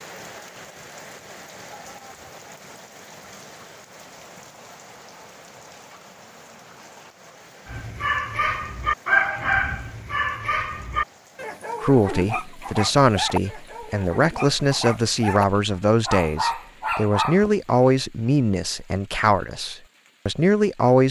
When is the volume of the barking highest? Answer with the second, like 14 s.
9 s.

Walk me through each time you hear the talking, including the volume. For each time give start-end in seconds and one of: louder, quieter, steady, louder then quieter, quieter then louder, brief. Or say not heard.
11.8-21.0 steady.